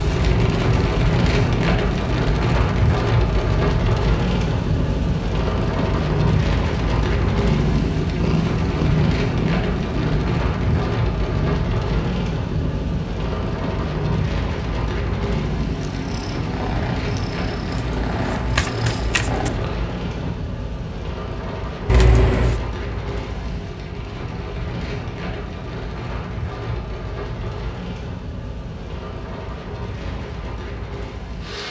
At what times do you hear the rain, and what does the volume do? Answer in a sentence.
You can hear the rain from 0.0 to 31.6 s, getting quieter.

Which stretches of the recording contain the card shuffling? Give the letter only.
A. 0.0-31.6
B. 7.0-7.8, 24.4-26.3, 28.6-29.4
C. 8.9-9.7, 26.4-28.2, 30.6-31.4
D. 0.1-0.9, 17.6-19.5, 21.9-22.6
D.